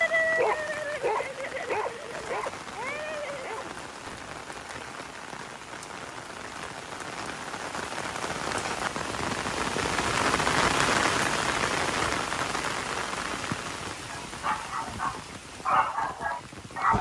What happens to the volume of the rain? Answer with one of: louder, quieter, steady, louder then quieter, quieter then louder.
louder then quieter.